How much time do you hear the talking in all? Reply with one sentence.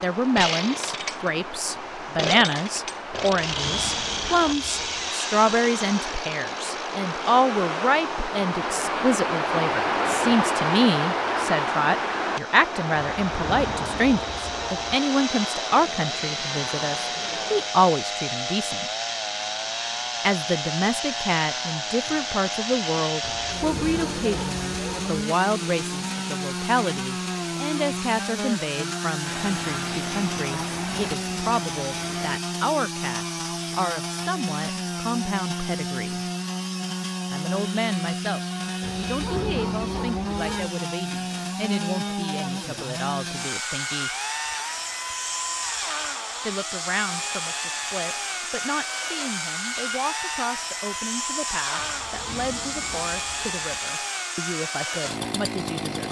You can hear the talking for 51 seconds altogether.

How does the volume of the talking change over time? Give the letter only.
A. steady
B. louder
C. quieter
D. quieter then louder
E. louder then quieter
C.